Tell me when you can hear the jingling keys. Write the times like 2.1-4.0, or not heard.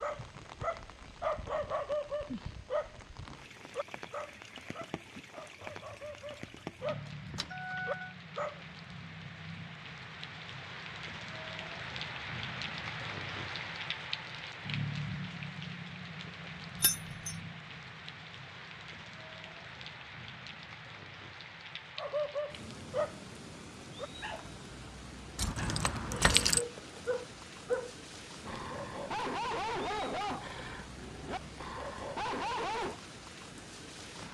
5.7-8.2, 16.8-17.4, 25.4-26.6.